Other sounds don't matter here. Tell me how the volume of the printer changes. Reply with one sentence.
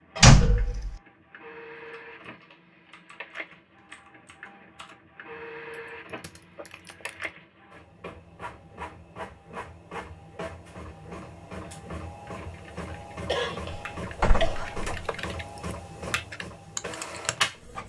The volume of the printer goes up.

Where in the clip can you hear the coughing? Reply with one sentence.
The coughing can be heard from 0.1 to 0.8 s, from 6.1 to 6.7 s and from 13.2 to 14.6 s.